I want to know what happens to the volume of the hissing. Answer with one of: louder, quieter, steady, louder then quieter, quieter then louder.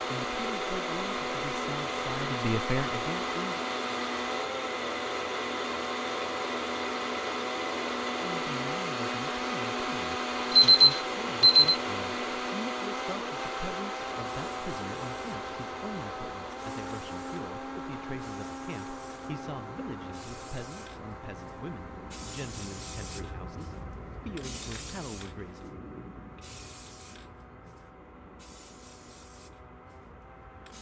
louder then quieter.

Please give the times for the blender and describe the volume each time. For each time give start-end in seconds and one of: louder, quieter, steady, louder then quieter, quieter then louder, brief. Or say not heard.
0.0-30.7 quieter.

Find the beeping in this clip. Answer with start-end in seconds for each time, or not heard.
10.5-11.8.